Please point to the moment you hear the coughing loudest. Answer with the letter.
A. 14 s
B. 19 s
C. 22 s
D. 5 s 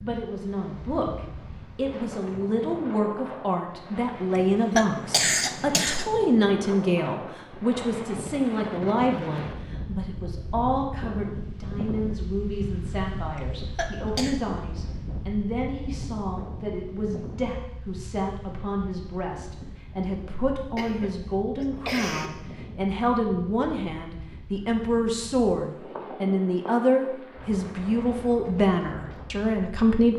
D.